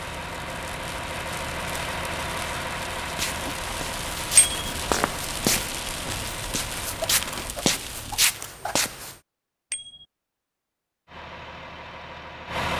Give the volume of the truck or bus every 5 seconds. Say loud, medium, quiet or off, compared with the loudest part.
loud, medium, loud.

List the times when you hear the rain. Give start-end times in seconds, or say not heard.
0.0-8.2.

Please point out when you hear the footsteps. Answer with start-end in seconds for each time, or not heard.
3.0-9.2.